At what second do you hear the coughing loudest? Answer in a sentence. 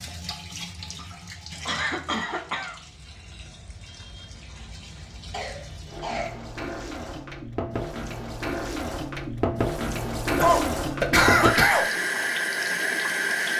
The volume of the coughing peaks at 11 seconds.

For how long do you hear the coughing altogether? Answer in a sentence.
You can hear the coughing for 4 seconds altogether.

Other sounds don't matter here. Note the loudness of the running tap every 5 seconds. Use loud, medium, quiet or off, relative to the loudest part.
quiet, medium, loud.